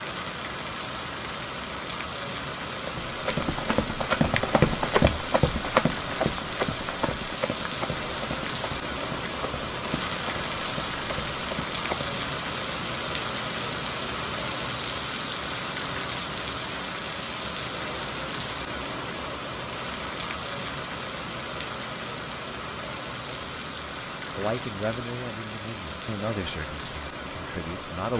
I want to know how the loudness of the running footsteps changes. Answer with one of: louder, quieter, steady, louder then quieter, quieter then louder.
quieter.